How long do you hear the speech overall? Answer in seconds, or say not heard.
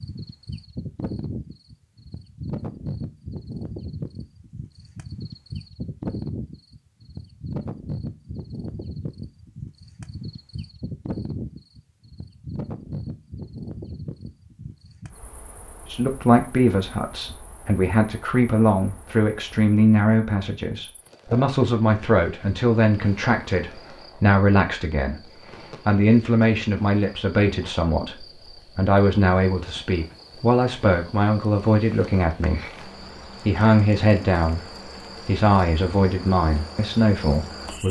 22 s.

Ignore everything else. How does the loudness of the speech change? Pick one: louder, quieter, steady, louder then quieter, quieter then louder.
steady.